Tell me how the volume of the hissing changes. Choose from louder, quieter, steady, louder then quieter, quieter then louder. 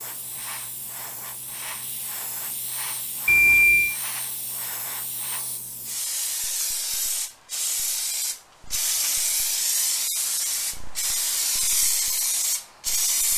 louder.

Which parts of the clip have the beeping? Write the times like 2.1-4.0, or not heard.
3.2-4.0.